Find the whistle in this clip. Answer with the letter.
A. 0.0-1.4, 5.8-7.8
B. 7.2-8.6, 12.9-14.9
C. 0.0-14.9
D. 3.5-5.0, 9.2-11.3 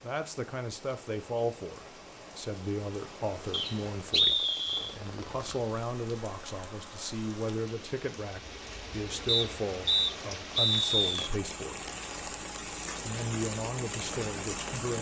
D.